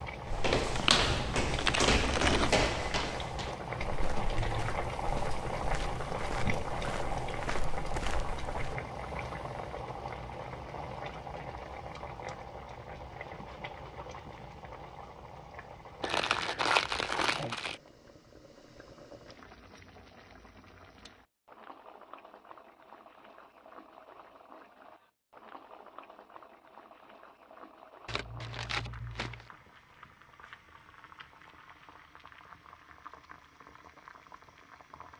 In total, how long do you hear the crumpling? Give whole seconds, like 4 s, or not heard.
5 s.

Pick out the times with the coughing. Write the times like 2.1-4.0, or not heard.
not heard.